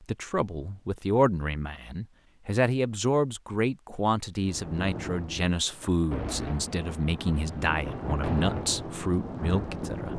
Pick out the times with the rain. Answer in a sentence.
You can hear the rain from 4.5 to 10.1 s.